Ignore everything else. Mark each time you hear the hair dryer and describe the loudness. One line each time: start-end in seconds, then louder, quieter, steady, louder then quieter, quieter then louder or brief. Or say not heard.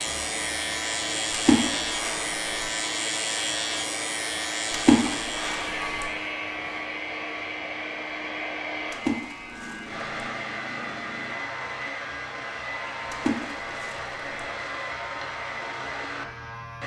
0.0-16.8 steady.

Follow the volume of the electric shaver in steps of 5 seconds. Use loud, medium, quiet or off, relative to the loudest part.
loud, medium, medium, medium.